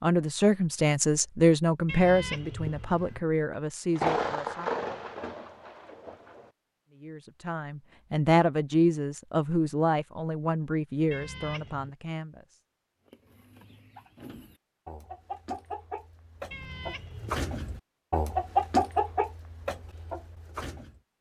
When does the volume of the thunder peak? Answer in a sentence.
The loudest moment of the thunder is at 4 seconds.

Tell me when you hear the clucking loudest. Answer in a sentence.
The loudest moment of the clucking is at 19 seconds.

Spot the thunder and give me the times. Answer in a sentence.
You can hear the thunder from 3.9 to 6.5 s.